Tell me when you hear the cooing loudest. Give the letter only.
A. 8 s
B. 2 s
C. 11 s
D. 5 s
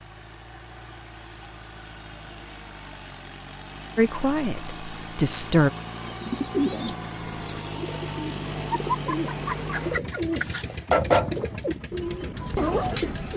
C.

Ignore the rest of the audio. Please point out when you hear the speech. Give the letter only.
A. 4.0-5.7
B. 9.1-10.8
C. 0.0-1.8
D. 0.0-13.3
A.